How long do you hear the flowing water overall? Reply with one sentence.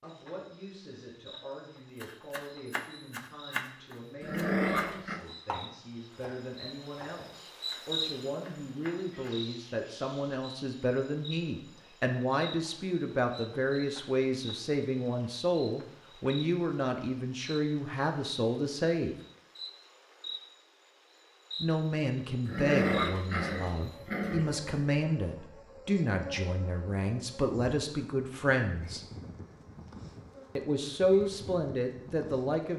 You can't hear the flowing water here.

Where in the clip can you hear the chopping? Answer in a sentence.
You can hear the chopping from 2.0 to 9.4 s.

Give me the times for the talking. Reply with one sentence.
The talking can be heard from 0.0 to 19.1 s, from 21.6 to 29.1 s and from 30.6 to 32.7 s.